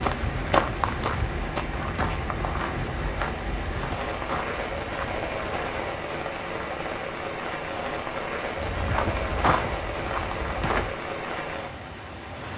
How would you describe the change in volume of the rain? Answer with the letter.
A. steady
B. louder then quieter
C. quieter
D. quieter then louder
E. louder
A.